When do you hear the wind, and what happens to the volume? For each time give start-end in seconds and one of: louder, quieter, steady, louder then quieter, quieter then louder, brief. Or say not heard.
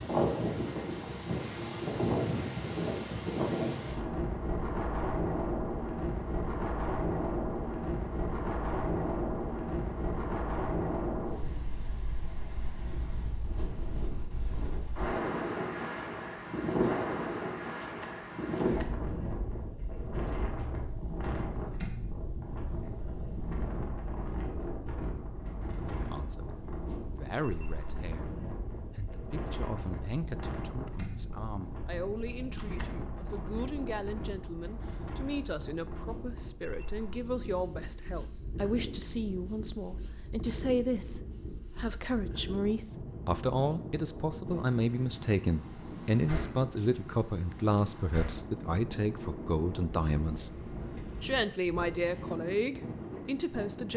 0.0-53.9 quieter.